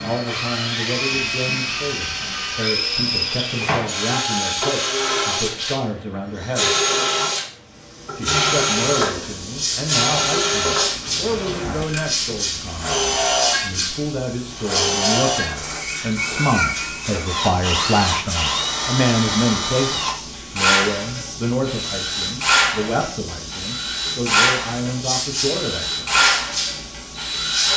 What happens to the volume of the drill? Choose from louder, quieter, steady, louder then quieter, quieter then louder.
steady.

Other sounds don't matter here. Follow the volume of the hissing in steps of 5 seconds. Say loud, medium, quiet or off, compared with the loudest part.
off, loud, loud, medium, medium, loud.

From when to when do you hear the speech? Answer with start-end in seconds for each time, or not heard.
0.0-6.8, 8.2-26.2.